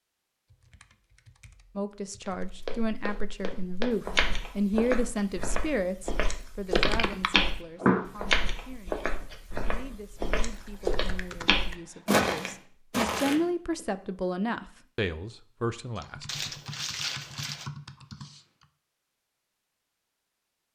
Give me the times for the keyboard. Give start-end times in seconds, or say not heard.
0.5-2.6, 6.8-8.2, 10.5-12.2, 15.9-18.6.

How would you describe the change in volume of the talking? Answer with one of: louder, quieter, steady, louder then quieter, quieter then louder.
quieter then louder.